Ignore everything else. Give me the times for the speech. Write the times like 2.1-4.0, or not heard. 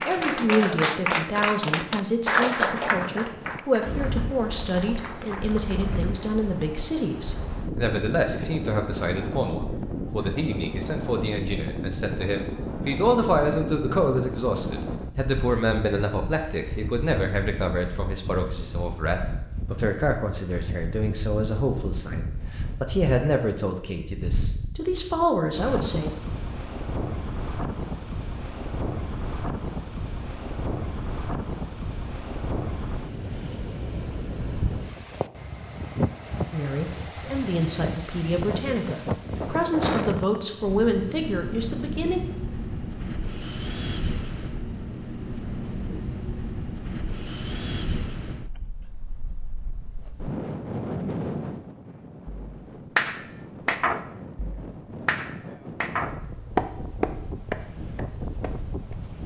0.1-26.1, 36.5-42.2.